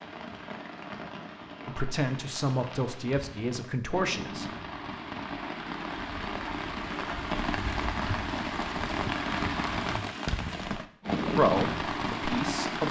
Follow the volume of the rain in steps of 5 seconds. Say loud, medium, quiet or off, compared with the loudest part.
medium, loud, loud.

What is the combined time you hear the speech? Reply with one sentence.
The speech can be heard for 4 seconds in total.